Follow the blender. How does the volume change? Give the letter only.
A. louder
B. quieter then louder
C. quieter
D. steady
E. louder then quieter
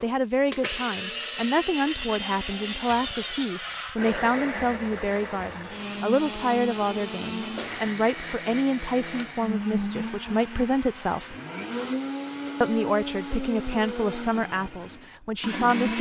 D.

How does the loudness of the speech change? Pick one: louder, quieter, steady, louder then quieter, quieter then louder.
steady.